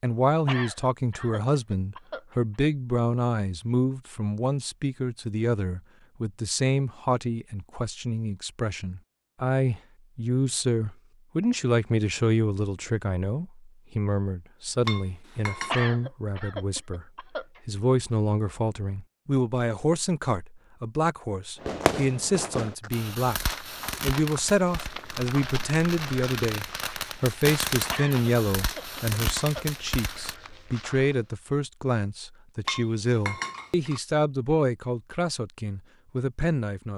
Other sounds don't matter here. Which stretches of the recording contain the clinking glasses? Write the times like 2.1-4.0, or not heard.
14.8-15.8, 32.6-34.0.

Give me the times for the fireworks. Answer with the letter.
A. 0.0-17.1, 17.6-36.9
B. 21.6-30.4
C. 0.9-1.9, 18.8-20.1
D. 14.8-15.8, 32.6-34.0
B.